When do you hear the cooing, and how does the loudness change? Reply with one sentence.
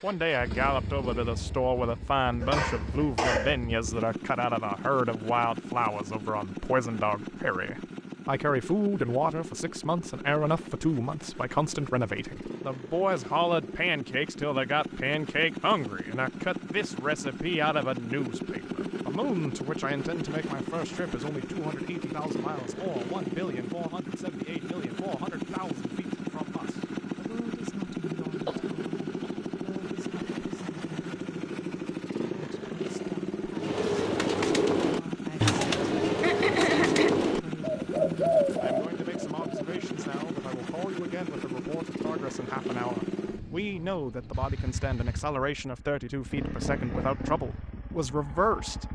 You can hear the cooing from 33.5 to 39.6 s, at a steady volume.